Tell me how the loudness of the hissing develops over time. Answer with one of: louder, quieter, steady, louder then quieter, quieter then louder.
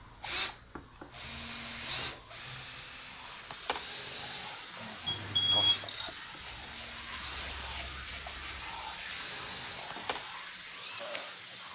louder.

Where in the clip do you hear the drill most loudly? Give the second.
2 s.